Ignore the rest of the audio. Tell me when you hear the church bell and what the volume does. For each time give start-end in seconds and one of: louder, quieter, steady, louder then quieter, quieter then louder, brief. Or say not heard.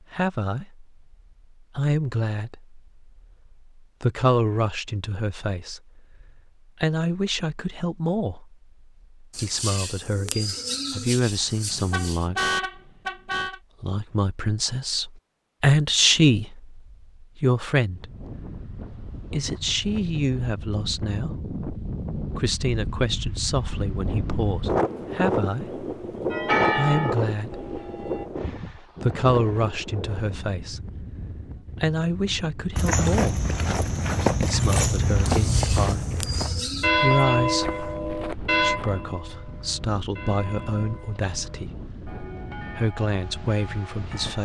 26.3-28.3 brief
36.8-44.3 quieter.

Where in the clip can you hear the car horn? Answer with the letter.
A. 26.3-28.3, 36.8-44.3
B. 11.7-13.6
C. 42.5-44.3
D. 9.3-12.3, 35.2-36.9
B.